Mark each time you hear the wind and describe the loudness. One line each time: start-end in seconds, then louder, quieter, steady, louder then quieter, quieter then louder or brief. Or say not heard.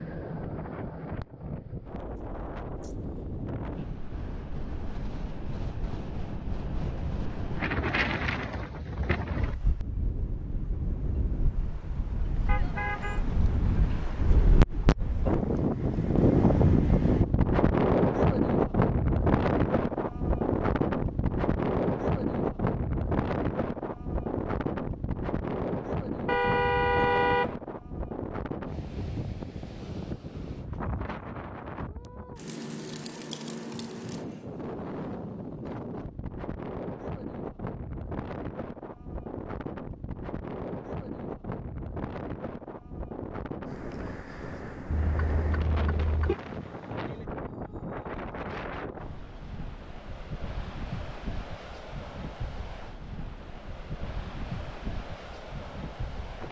0.0-56.4 louder then quieter.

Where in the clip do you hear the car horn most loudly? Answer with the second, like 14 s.
27 s.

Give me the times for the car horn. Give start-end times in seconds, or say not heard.
12.4-13.2, 26.2-27.6, 44.9-46.4.